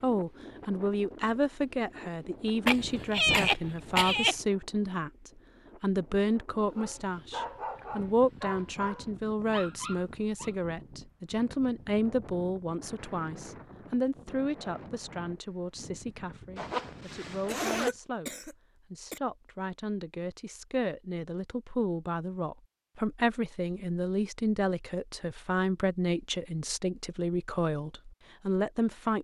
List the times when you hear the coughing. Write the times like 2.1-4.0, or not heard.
2.6-4.3, 17.4-19.2.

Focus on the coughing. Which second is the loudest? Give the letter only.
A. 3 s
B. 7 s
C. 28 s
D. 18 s
A.